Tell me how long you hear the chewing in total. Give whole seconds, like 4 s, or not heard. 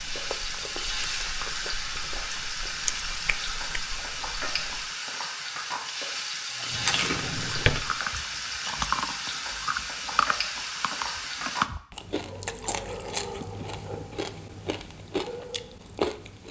15 s.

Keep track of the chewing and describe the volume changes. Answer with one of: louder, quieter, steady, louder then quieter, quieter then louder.
louder.